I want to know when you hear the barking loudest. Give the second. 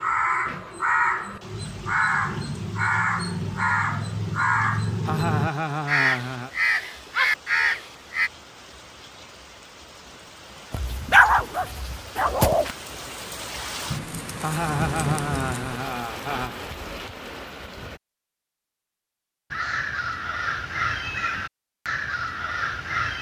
11 s.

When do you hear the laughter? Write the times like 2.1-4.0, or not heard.
5.0-6.5, 14.4-16.6.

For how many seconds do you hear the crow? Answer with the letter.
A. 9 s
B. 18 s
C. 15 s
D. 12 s
D.